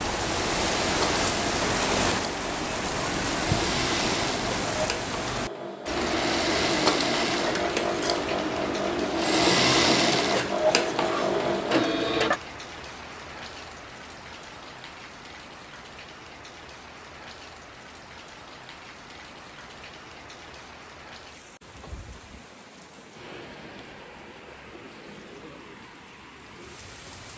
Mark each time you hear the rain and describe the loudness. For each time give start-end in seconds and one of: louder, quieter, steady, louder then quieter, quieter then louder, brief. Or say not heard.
0.0-27.3 quieter.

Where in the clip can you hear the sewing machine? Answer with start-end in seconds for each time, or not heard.
0.0-12.4.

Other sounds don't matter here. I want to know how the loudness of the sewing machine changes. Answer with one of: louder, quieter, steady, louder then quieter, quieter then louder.
louder.